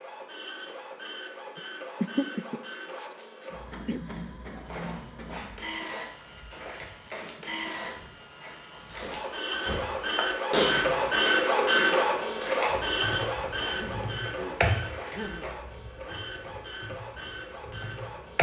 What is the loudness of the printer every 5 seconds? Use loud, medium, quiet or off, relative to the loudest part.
quiet, medium, loud, quiet.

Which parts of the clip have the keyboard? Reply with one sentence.
The keyboard can be heard from 12.7 to 18.3 s.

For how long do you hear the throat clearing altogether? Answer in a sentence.
The throat clearing can be heard for 5 seconds in total.